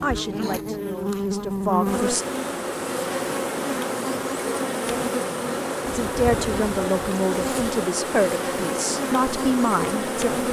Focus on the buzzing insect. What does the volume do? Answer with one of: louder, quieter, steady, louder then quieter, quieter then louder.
steady.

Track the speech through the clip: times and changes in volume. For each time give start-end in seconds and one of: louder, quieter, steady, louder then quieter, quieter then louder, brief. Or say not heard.
0.0-2.2 brief
5.9-10.4 steady.